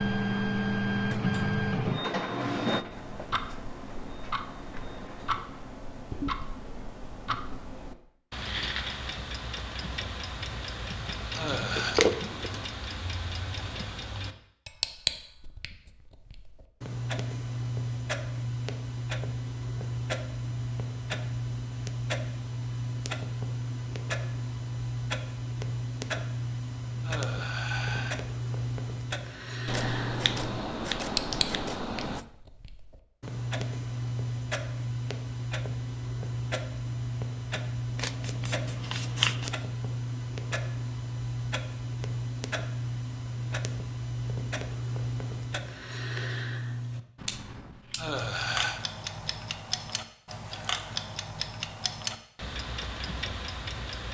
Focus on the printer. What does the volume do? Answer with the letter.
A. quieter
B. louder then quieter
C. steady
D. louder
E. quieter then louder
A.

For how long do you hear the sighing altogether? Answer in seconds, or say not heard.
3 s.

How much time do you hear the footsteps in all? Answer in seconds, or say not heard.
not heard.